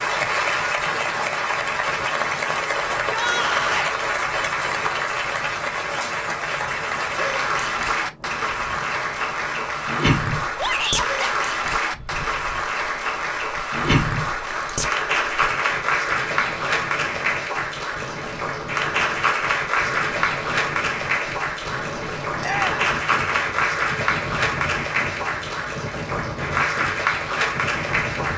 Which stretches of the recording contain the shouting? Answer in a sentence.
The shouting can be heard from 3.0 to 4.0 s, from 10.6 to 11.3 s and from 22.4 to 22.9 s.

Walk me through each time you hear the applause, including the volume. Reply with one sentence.
The applause can be heard from 0.0 to 28.3 s, at a steady volume.